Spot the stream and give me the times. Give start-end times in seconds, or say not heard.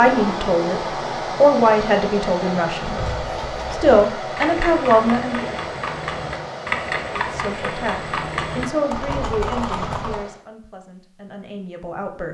0.0-10.4.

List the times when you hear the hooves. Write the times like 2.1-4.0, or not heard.
2.8-10.2.